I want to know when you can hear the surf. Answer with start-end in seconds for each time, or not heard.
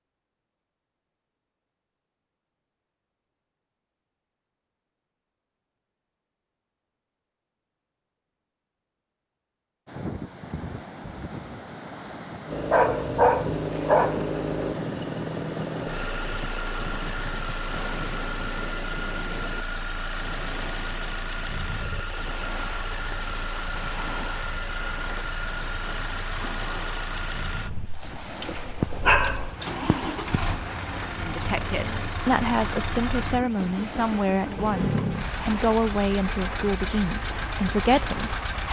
9.8-38.6.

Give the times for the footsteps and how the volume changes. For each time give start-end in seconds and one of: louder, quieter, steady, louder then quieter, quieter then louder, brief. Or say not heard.
not heard.